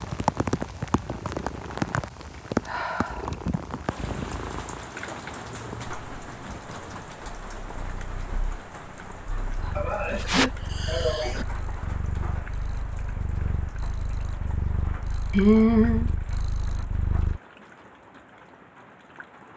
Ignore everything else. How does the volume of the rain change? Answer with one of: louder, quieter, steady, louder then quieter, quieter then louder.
quieter.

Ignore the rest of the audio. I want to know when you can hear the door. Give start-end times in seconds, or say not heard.
not heard.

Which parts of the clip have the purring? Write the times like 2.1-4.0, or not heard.
0.0-17.4.